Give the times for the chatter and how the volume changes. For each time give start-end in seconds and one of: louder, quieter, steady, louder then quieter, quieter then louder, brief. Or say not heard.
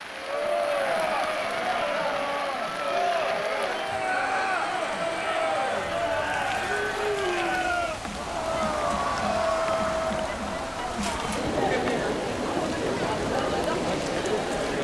0.1-14.7 steady.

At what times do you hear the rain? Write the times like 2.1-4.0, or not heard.
0.0-14.7.